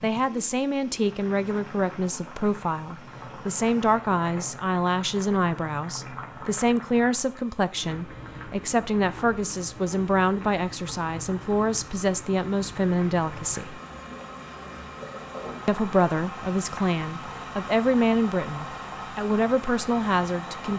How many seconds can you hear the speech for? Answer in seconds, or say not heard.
19 s.